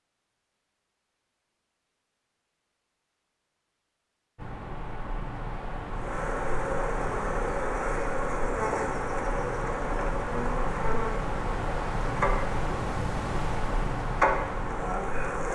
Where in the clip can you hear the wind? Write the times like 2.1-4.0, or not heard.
4.3-15.5.